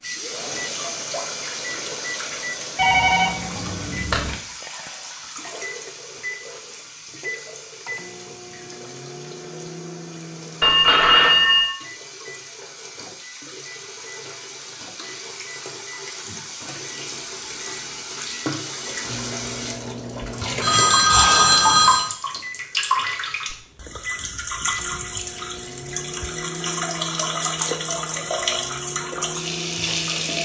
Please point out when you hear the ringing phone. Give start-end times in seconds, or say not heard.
2.8-4.3, 10.6-11.7, 20.6-22.1.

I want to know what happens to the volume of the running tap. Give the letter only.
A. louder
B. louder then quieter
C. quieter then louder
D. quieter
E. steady
C.